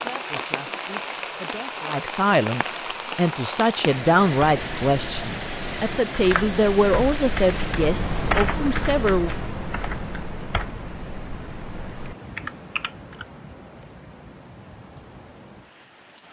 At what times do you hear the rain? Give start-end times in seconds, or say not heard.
0.0-16.2.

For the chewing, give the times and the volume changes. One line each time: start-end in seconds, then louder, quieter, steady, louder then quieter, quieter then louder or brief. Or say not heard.
not heard.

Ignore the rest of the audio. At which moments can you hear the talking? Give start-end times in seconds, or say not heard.
0.0-9.3.